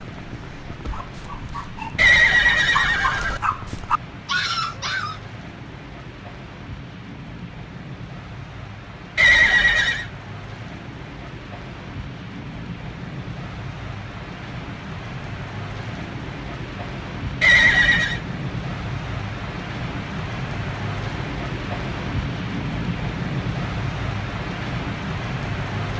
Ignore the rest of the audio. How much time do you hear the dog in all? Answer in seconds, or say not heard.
5 s.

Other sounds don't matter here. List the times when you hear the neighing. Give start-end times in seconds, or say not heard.
1.9-3.4, 9.2-10.1, 17.4-18.2.